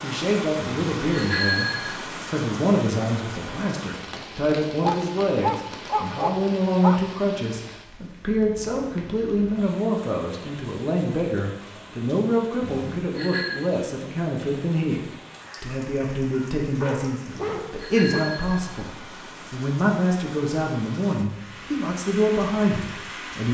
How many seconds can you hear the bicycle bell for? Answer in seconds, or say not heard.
4 s.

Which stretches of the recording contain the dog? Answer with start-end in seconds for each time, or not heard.
4.8-7.0, 15.4-18.3.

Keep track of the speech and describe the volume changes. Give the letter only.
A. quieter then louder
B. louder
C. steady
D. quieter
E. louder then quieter
C.